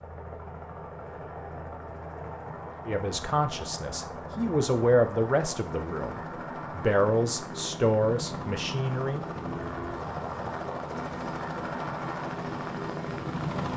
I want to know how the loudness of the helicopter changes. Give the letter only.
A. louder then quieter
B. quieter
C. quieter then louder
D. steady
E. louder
E.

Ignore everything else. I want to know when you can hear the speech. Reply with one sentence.
You can hear the speech from 2.9 to 9.2 s.